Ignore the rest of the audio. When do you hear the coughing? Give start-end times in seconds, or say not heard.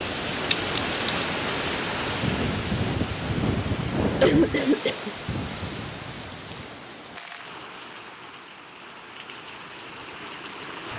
4.2-5.1.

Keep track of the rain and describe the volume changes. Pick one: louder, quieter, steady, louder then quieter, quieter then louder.
quieter.